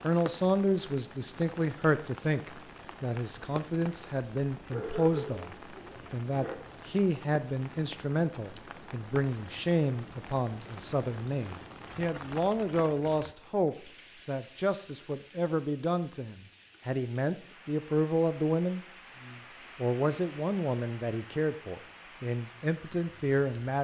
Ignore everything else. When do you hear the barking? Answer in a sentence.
The barking can be heard from 4.7 to 6.5 s.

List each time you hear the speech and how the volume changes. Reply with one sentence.
The speech can be heard from 0.0 to 23.8 s, at a steady volume.